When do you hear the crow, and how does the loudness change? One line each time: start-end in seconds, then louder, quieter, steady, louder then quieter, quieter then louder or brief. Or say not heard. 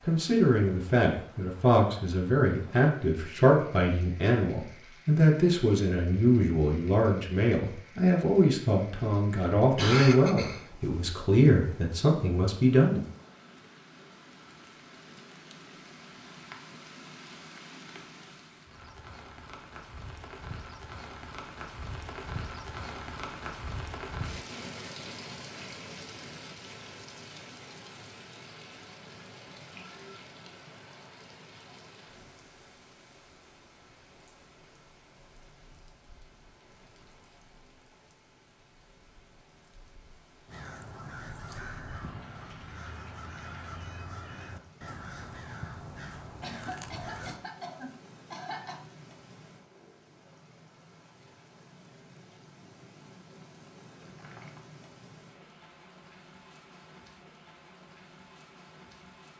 40.5-47.4 steady.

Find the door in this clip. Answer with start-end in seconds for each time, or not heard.
54.0-54.8.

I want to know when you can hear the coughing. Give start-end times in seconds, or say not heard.
9.6-10.9, 46.4-48.8.